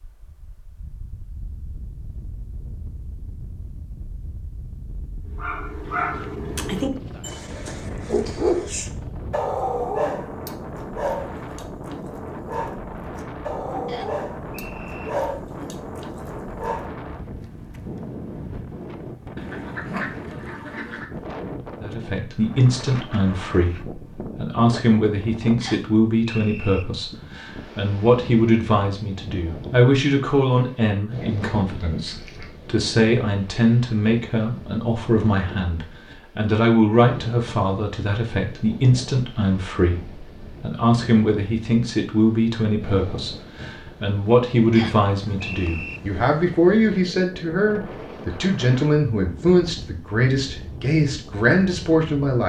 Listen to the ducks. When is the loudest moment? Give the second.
20 s.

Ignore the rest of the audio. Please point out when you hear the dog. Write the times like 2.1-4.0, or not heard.
5.3-16.9.